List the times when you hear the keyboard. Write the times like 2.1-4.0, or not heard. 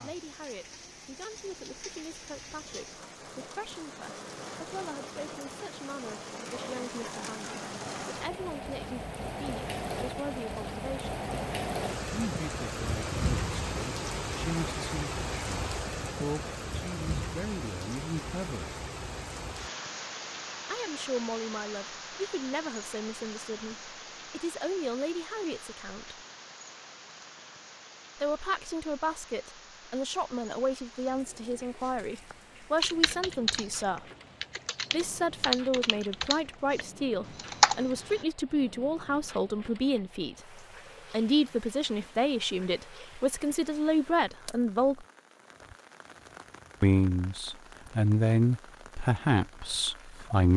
32.8-38.2.